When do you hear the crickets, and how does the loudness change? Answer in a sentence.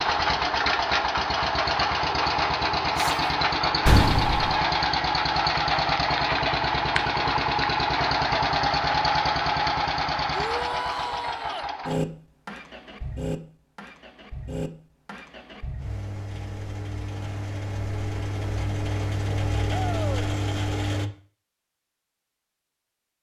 The crickets can't be heard in this clip.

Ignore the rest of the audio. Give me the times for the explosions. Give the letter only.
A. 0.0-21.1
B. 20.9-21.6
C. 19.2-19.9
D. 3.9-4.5
D.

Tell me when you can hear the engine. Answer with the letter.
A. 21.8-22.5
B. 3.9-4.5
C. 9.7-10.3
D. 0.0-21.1
D.